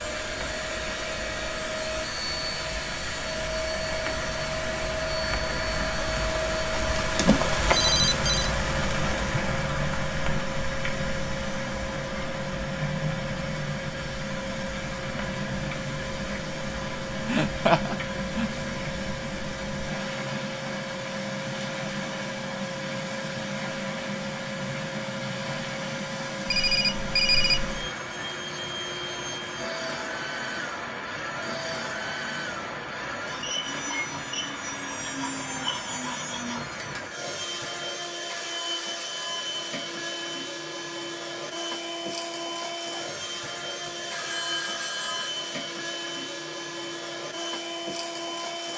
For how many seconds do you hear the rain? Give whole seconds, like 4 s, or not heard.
37 s.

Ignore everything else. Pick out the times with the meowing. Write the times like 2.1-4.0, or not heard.
not heard.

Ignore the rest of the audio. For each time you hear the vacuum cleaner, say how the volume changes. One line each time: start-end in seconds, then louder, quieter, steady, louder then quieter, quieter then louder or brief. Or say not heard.
0.0-48.7 steady.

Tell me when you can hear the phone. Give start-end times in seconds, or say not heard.
7.7-8.5, 26.4-27.6, 43.9-45.3.